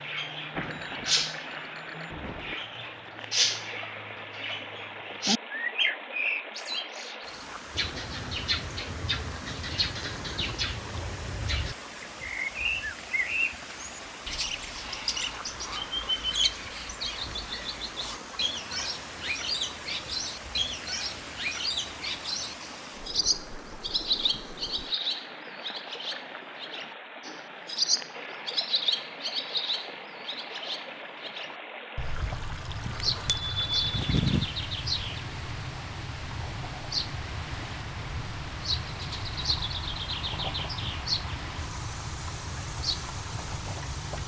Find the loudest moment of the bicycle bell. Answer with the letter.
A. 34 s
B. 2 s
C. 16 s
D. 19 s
A.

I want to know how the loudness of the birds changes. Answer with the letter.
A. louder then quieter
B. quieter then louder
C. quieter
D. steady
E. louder
D.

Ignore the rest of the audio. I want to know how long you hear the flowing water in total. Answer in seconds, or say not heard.
44 s.